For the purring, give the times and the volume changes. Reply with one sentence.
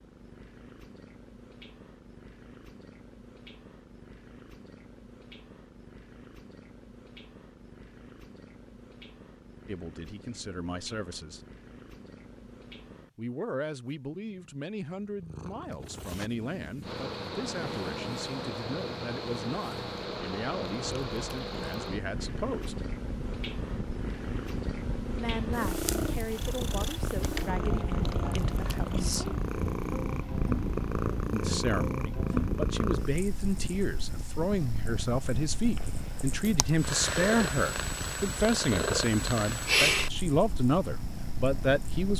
The purring can be heard from 0.0 to 42.1 s, getting louder.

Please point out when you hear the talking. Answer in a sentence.
You can hear the talking from 9.7 to 11.4 s, from 13.2 to 22.8 s, from 25.1 to 29.4 s and from 31.3 to 42.1 s.